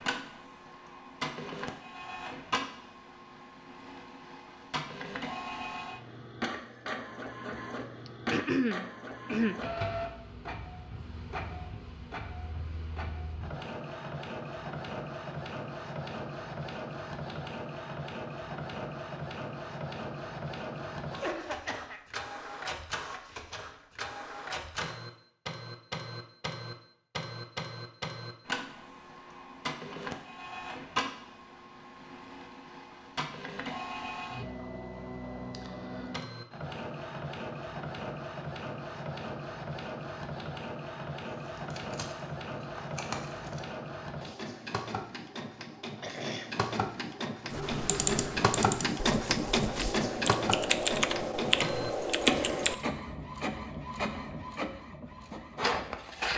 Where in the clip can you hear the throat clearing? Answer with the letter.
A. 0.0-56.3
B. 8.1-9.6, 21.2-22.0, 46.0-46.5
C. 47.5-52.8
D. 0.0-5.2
B.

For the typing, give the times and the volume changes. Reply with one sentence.
You can hear the typing from 47.5 to 52.8 s, getting quieter then louder.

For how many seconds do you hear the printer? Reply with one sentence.
You can hear the printer for 56 seconds altogether.